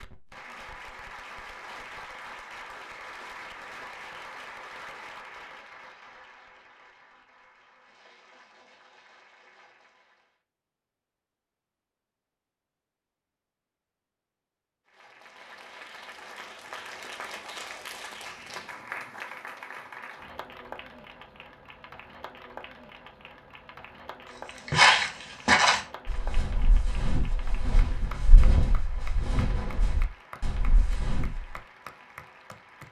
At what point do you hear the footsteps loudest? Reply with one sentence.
The volume of the footsteps peaks at 25 seconds.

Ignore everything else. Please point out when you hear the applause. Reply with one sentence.
The applause can be heard from 0.0 to 10.3 s and from 14.8 to 32.8 s.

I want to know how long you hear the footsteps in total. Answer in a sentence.
The footsteps can be heard for 7 seconds in total.